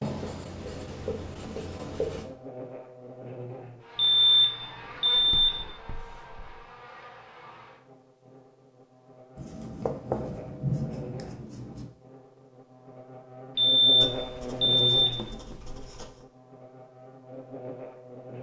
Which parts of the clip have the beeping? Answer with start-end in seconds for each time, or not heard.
4.0-5.7, 13.6-15.3.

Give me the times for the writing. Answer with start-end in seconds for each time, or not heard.
0.0-2.3, 5.1-6.6, 9.3-11.9, 14.0-16.2.